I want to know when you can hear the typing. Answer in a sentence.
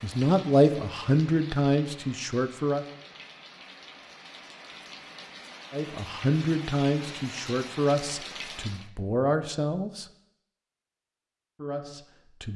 You can't hear the typing here.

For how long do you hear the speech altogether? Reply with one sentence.
The speech can be heard for 8 seconds in total.